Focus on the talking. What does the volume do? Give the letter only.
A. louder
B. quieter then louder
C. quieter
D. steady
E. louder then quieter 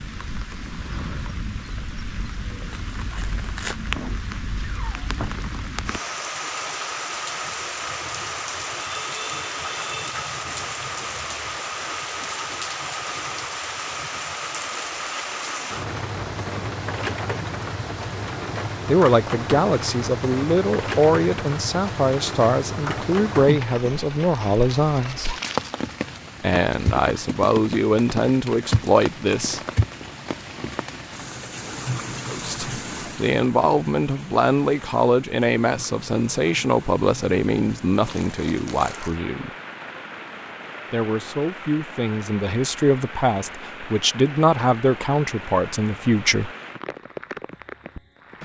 D.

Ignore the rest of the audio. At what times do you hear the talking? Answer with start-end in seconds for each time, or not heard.
18.9-25.3, 26.4-29.6, 32.2-39.5, 40.9-46.5.